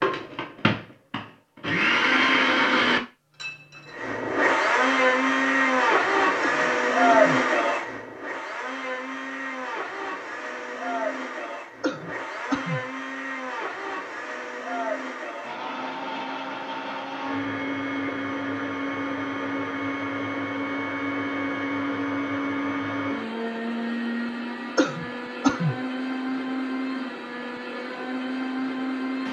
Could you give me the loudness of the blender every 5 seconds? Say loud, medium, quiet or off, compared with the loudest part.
loud, loud, medium, medium, medium, medium.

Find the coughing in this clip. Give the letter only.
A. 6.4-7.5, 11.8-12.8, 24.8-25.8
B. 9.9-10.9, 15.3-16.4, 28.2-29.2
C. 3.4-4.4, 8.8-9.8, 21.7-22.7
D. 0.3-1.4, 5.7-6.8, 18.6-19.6
A.